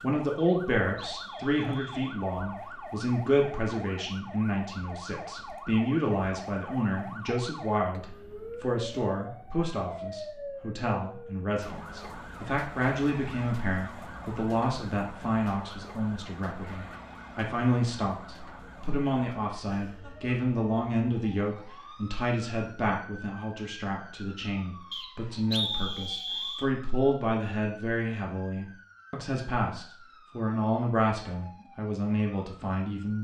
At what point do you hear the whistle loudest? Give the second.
26 s.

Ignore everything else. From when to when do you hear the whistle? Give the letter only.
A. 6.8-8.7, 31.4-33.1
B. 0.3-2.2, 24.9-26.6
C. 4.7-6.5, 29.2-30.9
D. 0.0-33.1
B.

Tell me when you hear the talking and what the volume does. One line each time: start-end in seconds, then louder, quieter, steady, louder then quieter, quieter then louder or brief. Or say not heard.
0.0-33.1 steady.